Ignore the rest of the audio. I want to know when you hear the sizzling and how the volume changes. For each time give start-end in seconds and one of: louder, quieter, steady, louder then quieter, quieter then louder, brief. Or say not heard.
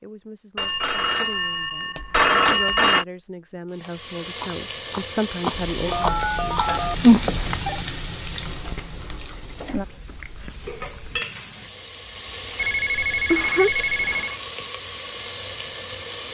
3.7-16.2 quieter then louder.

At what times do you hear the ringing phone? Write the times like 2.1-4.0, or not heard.
0.6-3.0, 5.7-7.8, 12.6-14.3.